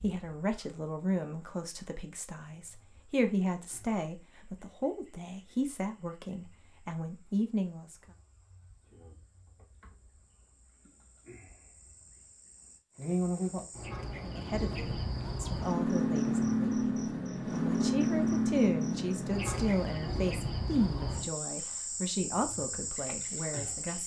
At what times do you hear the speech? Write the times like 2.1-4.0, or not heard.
0.0-8.0, 14.2-24.0.